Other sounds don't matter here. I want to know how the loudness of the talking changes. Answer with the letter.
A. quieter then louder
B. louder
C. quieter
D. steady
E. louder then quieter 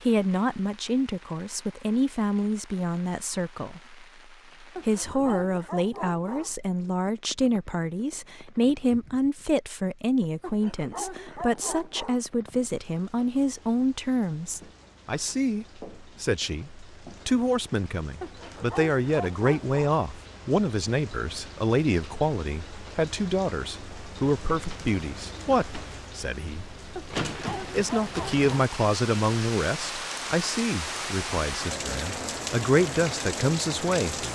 D.